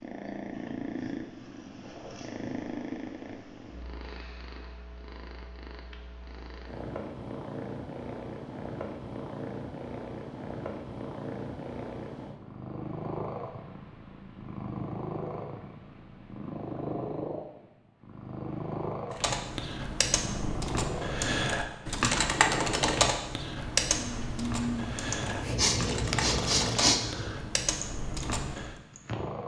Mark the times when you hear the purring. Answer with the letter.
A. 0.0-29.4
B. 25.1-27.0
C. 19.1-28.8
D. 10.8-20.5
A.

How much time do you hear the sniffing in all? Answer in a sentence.
The sniffing can be heard for 2 seconds in total.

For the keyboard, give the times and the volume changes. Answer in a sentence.
You can hear the keyboard from 19.1 to 28.8 s, getting louder then quieter.